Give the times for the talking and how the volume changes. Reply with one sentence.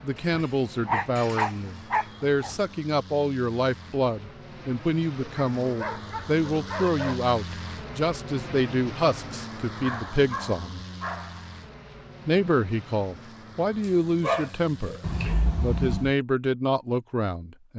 You can hear the talking from 0.0 to 10.8 s, at a steady volume; briefly from 12.2 to 15.0 s; and briefly from 15.6 to 17.7 s.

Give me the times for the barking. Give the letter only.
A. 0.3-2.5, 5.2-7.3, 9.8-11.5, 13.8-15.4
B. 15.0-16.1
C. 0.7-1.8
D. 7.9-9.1
A.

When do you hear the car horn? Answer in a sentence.
The car horn can be heard from 15.0 to 16.1 s.